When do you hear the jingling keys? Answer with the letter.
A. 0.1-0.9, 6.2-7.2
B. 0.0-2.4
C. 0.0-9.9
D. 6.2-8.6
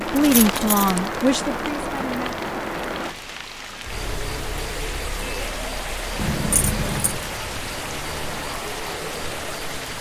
A.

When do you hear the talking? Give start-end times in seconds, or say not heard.
0.0-2.4.